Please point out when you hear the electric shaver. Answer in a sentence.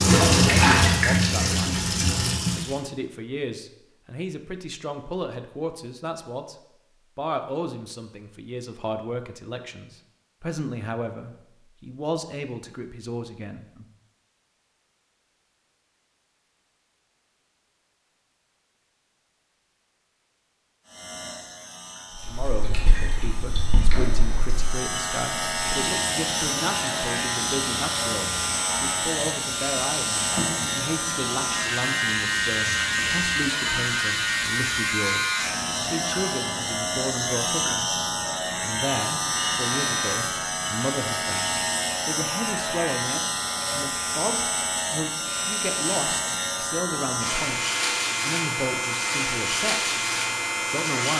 The electric shaver can be heard from 20.9 to 51.1 s.